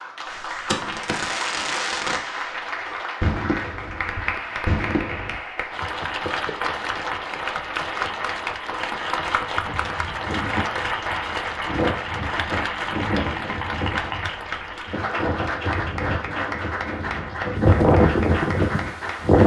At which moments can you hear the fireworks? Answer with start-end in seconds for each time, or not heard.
0.2-5.4.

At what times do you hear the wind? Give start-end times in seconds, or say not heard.
9.5-19.4.